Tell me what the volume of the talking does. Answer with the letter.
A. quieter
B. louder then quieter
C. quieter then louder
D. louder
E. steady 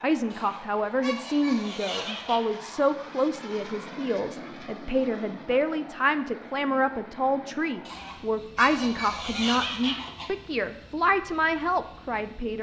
E.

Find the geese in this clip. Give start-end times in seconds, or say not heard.
0.3-2.5, 7.8-10.3.